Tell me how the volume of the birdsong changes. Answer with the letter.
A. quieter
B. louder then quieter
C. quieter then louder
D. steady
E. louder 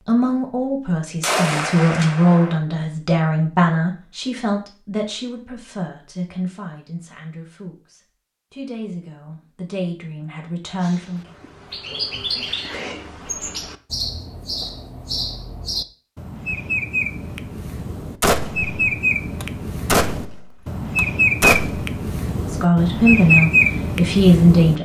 E.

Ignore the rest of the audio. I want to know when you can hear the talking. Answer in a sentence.
You can hear the talking from 0.0 to 11.2 s and from 22.4 to 24.8 s.